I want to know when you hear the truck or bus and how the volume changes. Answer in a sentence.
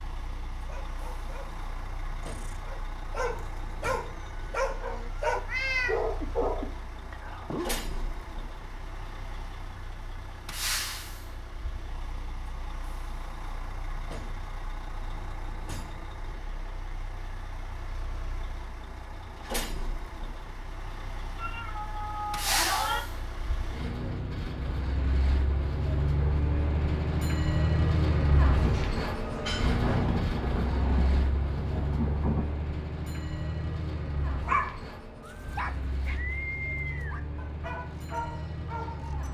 You can hear the truck or bus from 0.0 to 39.2 s, getting louder then quieter.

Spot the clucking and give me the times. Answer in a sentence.
The clucking can't be heard in this clip.